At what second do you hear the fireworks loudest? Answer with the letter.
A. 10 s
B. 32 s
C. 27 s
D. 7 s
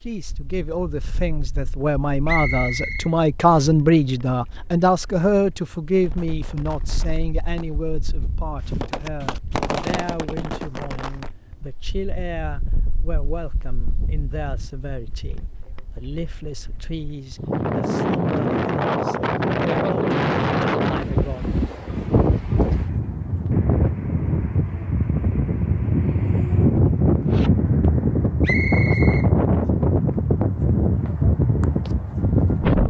A.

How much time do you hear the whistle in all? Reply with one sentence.
The whistle can be heard for 2 seconds in total.